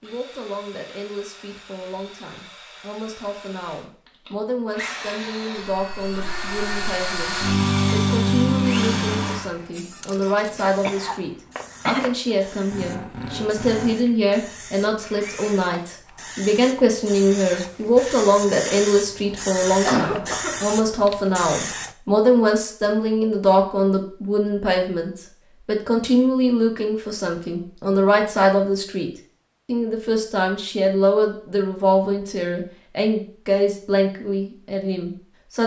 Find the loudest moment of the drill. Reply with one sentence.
The volume of the drill peaks at 8 seconds.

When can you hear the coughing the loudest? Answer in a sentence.
The volume of the coughing peaks at 20 seconds.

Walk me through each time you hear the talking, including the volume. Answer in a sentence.
The talking can be heard from 0.0 to 35.6 s, getting louder.